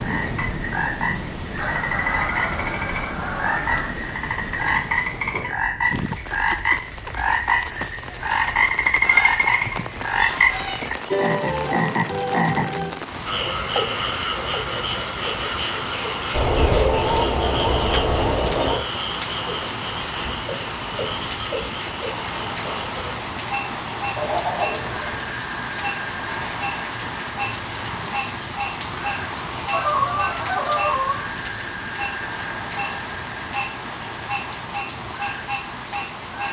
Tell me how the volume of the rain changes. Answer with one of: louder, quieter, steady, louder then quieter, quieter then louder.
steady.